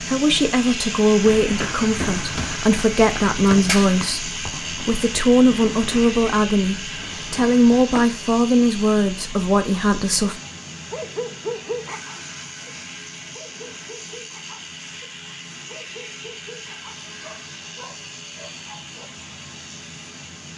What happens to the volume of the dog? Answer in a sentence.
The volume of the dog goes down.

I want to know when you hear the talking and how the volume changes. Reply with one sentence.
You can hear the talking from 0.0 to 10.3 s, at a steady volume.